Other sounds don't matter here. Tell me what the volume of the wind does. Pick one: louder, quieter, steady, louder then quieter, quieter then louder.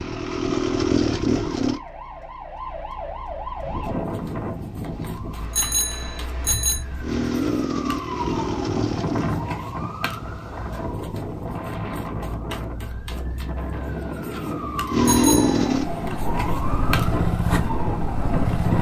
steady.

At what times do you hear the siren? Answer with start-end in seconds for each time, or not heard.
0.0-18.7.